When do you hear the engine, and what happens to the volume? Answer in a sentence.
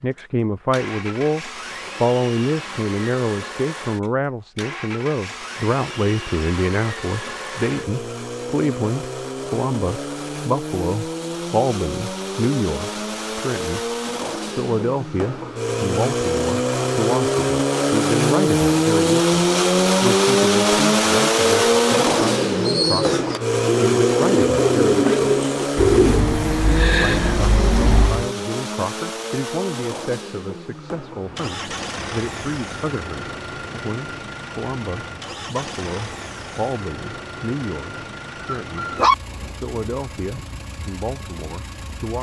You can hear the engine from 0.0 to 42.1 s, getting louder then quieter.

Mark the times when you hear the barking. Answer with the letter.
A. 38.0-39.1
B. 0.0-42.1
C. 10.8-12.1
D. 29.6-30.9
A.